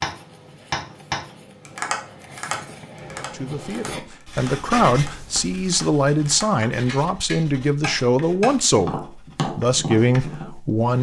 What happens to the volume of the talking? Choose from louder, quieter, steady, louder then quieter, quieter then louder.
steady.